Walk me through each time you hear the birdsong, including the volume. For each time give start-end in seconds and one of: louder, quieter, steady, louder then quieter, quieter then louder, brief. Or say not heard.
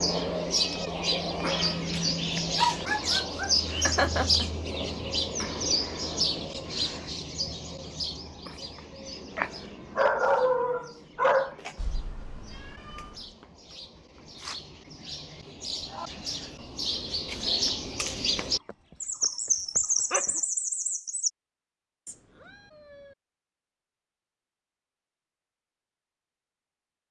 0.0-21.3 quieter then louder.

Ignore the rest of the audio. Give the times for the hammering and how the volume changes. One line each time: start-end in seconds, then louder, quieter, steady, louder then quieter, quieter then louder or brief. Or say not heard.
not heard.